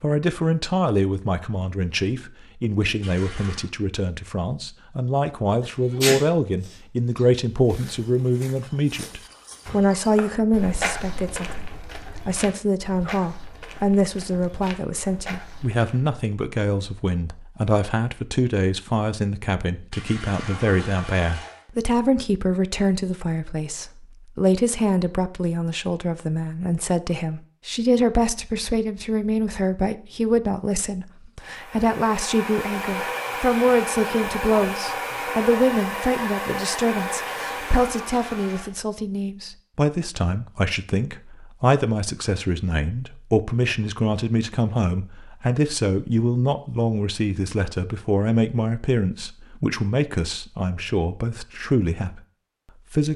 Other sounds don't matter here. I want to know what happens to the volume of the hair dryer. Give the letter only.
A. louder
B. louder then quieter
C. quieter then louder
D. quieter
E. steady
E.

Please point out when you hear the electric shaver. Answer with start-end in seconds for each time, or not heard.
not heard.